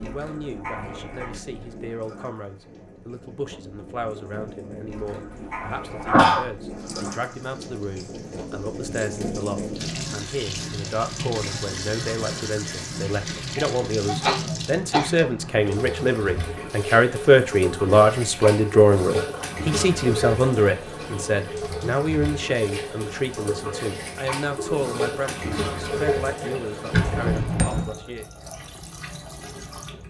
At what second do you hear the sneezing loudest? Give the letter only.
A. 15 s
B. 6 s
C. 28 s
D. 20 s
B.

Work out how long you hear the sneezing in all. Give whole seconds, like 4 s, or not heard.
4 s.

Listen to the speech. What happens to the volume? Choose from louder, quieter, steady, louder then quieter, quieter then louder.
louder then quieter.